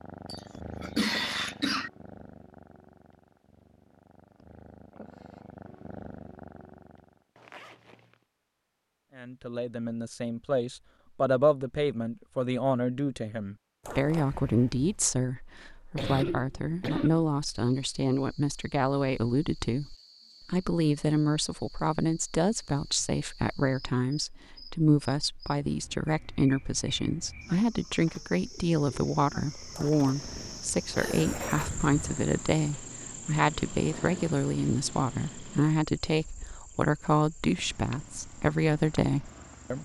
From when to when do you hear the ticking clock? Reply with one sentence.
The ticking clock can't be heard in this clip.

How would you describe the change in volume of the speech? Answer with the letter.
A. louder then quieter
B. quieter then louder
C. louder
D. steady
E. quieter
D.